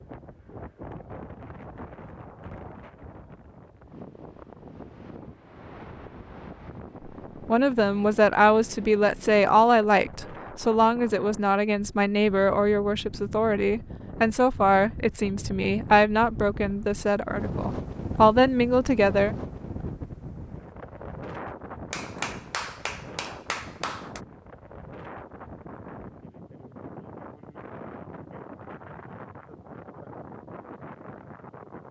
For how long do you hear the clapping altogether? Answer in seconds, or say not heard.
2 s.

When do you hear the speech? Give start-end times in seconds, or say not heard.
7.5-19.4.